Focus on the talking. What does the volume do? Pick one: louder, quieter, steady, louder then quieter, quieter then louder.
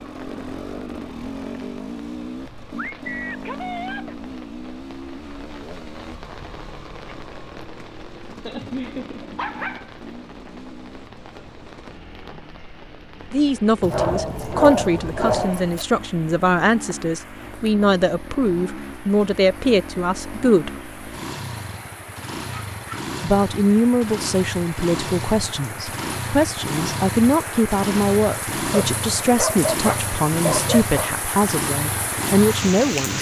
steady.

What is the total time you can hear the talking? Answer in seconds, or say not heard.
17 s.